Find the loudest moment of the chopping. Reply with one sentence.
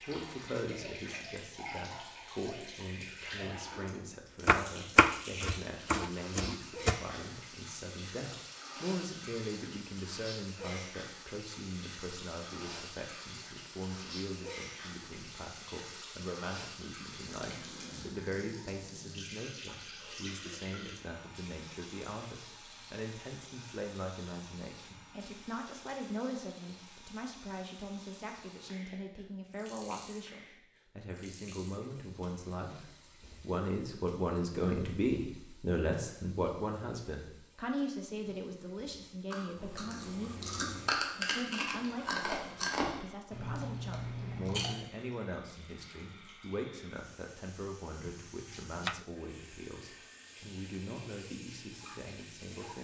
The loudest moment of the chopping is at 5 seconds.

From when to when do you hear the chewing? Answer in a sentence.
The chewing can be heard from 39.3 to 44.8 s.